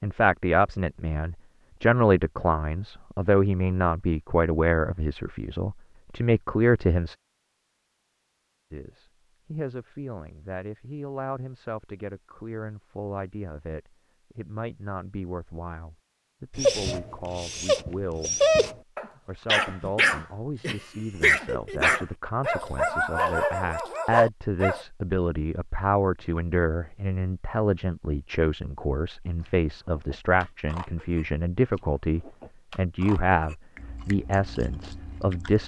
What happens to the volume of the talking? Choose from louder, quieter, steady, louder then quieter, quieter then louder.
quieter then louder.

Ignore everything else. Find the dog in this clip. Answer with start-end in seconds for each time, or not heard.
16.6-24.9.